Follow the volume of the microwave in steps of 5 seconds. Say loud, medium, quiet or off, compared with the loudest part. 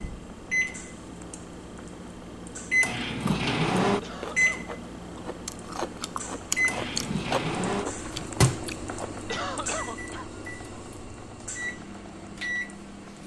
loud, loud, medium.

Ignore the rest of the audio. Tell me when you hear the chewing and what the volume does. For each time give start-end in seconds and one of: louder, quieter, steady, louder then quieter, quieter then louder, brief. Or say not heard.
3.2-9.1 louder then quieter.